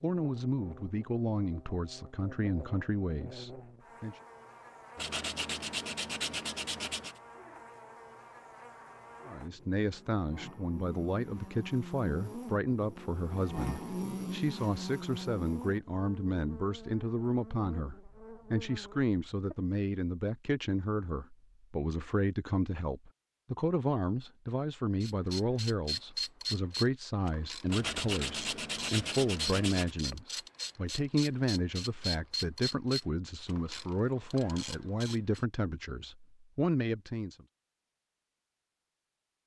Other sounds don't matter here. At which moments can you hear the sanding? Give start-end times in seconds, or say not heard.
5.0-7.2, 27.6-29.9.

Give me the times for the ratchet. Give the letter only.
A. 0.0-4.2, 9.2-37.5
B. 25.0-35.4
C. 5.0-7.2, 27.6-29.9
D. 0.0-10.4
B.